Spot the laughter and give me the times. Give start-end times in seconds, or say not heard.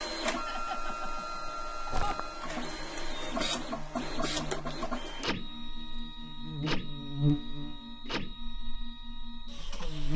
0.3-2.2.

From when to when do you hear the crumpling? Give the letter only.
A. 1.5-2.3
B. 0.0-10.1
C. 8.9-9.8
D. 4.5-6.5
A.